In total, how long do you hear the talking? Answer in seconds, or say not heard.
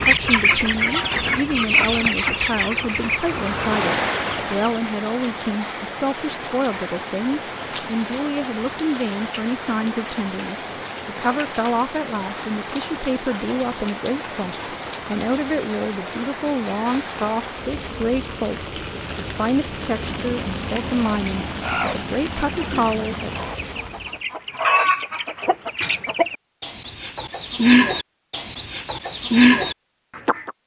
23 s.